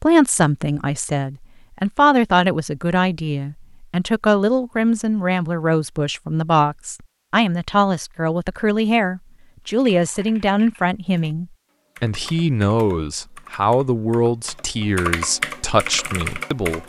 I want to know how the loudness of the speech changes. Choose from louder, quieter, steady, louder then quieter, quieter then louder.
steady.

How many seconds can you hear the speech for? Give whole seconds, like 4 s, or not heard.
17 s.